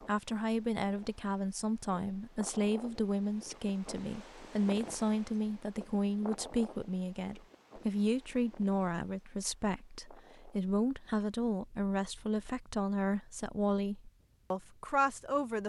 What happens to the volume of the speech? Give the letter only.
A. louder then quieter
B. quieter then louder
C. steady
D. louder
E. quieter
C.